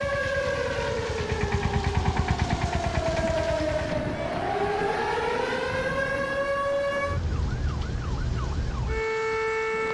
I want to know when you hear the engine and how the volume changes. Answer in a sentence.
The engine can be heard from 0.0 to 4.0 s, getting louder then quieter.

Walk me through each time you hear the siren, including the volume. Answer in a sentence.
You can hear the siren from 0.0 to 9.9 s, at a steady volume.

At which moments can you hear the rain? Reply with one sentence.
You can hear the rain from 0.0 to 9.9 s.